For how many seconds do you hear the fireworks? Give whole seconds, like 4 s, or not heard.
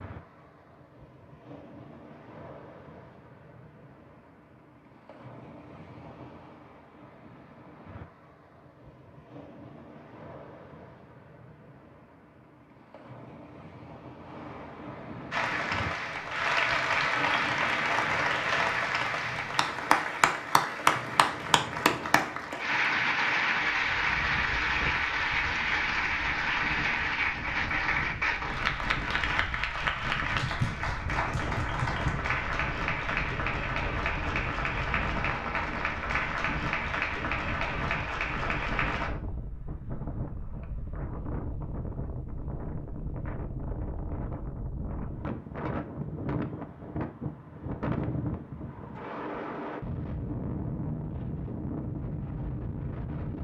not heard.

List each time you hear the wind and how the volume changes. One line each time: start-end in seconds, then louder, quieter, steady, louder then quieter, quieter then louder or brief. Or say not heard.
0.0-53.3 louder.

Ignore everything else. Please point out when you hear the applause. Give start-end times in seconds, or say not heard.
15.3-39.1.